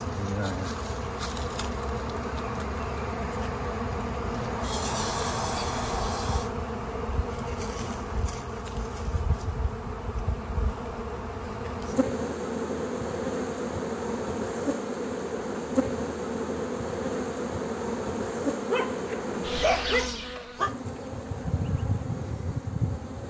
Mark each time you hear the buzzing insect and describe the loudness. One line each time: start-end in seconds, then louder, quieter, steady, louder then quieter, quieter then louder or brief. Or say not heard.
0.0-23.2 steady.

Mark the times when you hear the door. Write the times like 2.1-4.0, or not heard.
4.3-6.5, 19.7-21.1.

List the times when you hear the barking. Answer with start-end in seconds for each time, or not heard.
18.5-20.8.